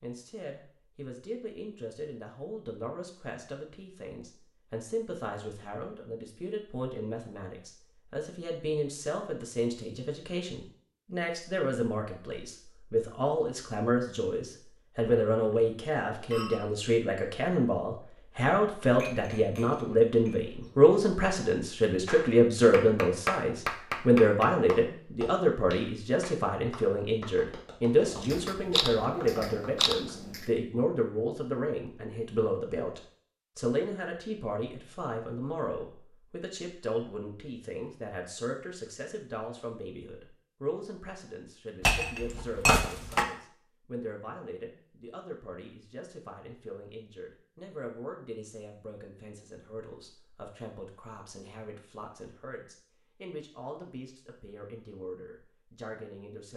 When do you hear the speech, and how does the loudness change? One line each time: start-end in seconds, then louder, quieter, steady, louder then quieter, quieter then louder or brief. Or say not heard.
0.0-56.5 louder then quieter.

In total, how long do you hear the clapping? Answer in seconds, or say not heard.
8 s.